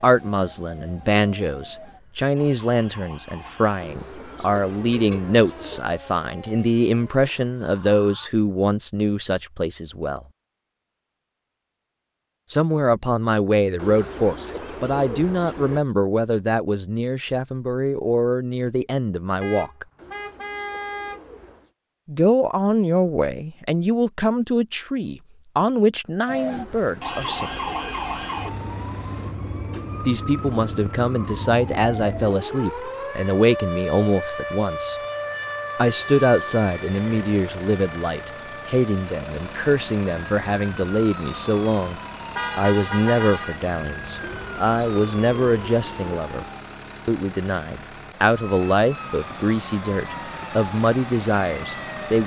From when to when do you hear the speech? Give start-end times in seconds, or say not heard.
0.0-10.2, 12.5-19.9, 22.1-27.6, 30.1-35.0, 35.8-46.5, 47.0-52.2.